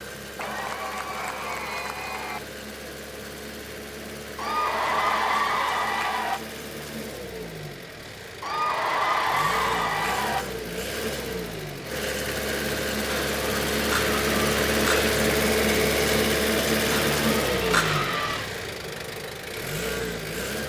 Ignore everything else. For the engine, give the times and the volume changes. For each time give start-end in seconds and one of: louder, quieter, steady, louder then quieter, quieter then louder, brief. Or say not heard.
0.0-20.6 louder.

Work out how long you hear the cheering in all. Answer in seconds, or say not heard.
10 s.